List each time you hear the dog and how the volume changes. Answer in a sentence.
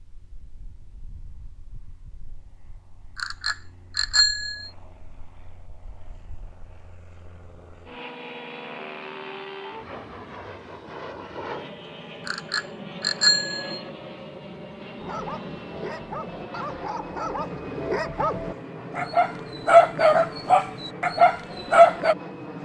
You can hear the dog from 15.0 to 22.1 s, getting louder.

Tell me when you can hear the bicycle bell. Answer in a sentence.
You can hear the bicycle bell from 3.1 to 4.7 s and from 12.2 to 13.8 s.